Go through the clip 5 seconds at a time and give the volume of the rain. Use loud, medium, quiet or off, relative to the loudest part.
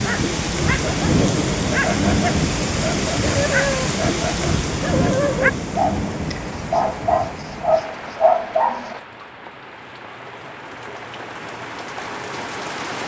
loud, medium, medium.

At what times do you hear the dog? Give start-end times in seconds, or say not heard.
0.0-9.0.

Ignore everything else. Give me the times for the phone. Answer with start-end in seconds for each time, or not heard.
not heard.